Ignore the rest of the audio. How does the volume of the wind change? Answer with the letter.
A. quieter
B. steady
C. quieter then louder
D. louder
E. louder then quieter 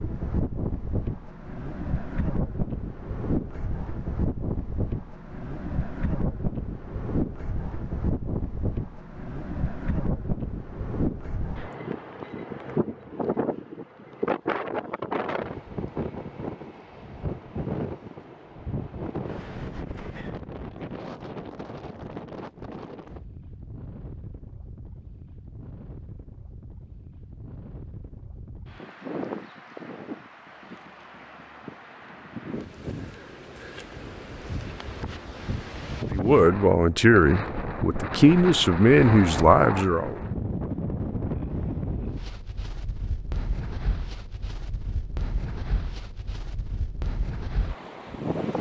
C.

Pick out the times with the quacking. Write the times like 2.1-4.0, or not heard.
not heard.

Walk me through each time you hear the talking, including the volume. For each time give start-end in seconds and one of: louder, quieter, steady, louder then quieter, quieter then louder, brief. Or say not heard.
36.1-40.2 steady.